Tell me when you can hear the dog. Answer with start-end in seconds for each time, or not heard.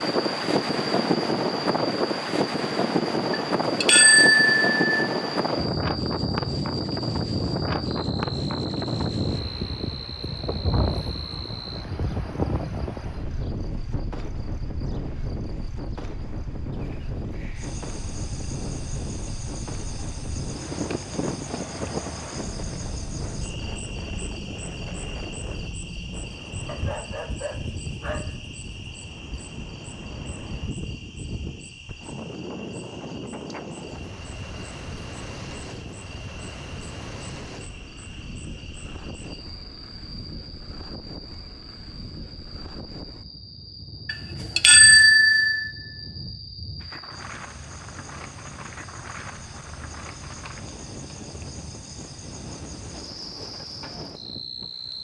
26.6-28.4.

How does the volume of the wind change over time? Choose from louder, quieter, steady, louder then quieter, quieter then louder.
quieter.